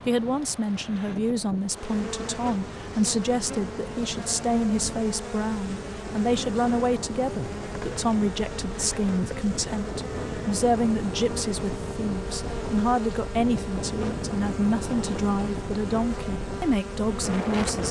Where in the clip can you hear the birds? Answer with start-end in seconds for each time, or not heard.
not heard.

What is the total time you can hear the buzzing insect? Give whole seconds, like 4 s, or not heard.
16 s.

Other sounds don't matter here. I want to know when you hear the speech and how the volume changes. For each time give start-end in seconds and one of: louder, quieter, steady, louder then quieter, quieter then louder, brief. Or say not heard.
0.1-17.8 steady.